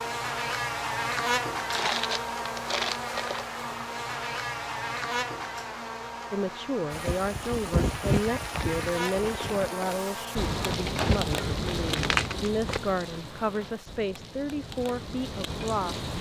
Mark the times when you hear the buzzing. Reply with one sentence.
The buzzing can be heard from 0.0 to 10.8 s.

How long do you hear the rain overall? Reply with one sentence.
The rain can be heard for 9 seconds in total.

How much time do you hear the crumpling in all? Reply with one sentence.
You can hear the crumpling for 4 seconds altogether.